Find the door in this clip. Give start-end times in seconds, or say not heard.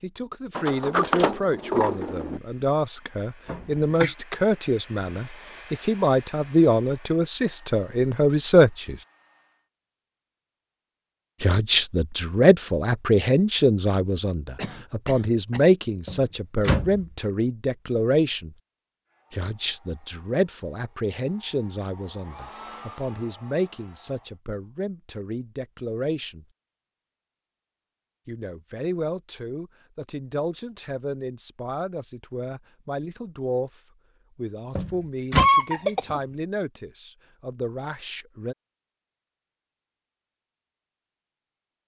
0.6-2.4, 16.1-17.1, 34.8-35.5.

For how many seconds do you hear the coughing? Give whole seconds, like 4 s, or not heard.
3 s.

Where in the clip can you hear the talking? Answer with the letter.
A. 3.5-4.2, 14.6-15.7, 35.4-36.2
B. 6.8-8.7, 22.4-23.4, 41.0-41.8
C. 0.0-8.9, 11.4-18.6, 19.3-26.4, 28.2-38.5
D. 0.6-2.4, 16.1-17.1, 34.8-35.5
C.